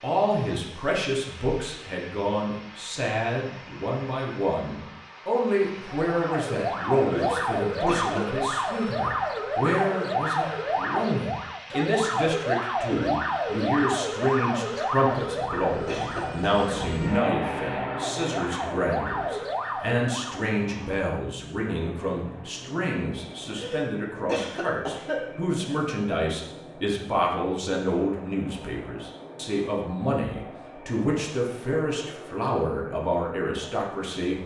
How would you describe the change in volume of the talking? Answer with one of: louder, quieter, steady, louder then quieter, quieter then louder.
steady.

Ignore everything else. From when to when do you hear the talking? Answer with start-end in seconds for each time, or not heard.
0.0-34.4.